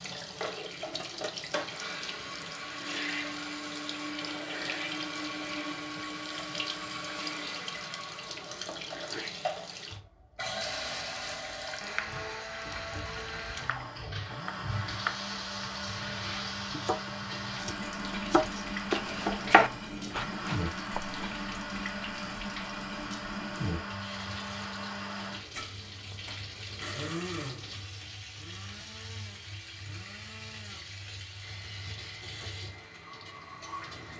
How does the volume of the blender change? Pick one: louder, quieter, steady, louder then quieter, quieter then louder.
quieter.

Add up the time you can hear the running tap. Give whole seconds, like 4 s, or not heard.
34 s.